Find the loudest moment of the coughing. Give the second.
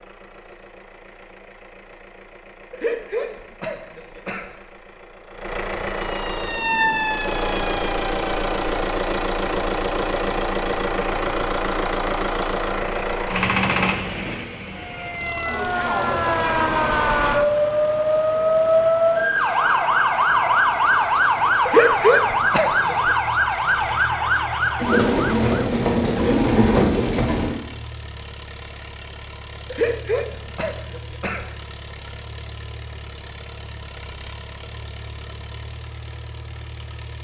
22 s.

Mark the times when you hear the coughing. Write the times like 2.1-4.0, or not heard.
2.7-4.5, 21.6-23.1, 29.7-31.5.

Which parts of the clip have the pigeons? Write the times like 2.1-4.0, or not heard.
24.8-27.6.